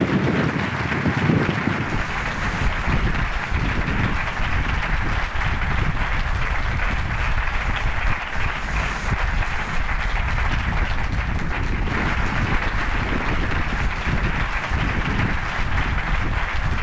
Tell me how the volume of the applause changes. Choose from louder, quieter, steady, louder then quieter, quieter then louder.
steady.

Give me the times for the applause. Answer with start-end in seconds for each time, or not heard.
0.0-16.7.